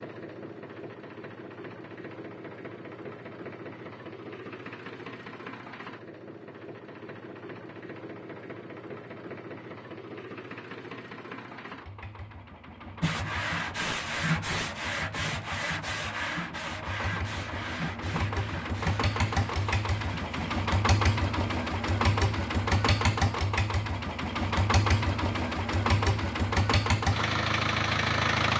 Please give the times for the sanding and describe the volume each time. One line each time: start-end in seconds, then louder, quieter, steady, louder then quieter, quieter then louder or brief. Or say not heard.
13.0-20.6 quieter.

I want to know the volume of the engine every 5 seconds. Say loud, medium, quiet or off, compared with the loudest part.
quiet, quiet, quiet, medium, loud, loud.